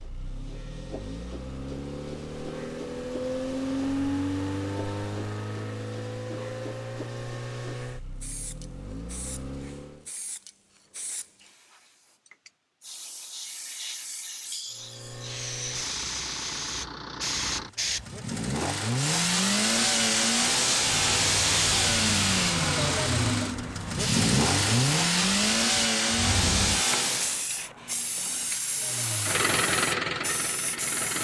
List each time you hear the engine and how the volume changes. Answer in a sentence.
The engine can be heard from 0.0 to 10.1 s, getting louder then quieter; from 14.7 to 27.5 s, getting louder; and briefly from 28.7 to 31.2 s.